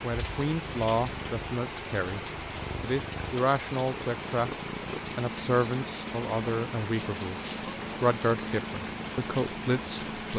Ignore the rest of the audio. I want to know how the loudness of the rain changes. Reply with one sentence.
The loudness of the rain stays about the same.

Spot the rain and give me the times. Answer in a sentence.
You can hear the rain from 0.0 to 10.3 s.